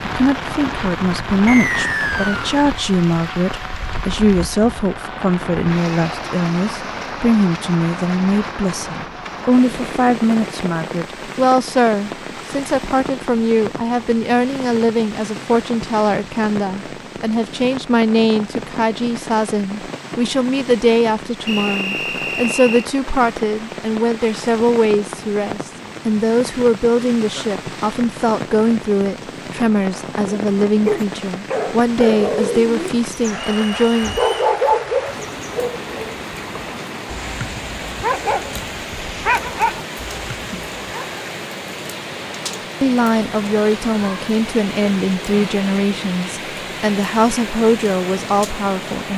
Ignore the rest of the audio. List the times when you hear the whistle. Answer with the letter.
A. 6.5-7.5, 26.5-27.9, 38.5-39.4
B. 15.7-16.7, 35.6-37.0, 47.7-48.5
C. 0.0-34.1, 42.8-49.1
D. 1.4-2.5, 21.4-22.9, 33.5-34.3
D.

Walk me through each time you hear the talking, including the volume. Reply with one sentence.
You can hear the talking from 0.0 to 34.1 s, at a steady volume; and from 42.8 to 49.1 s, at a steady volume.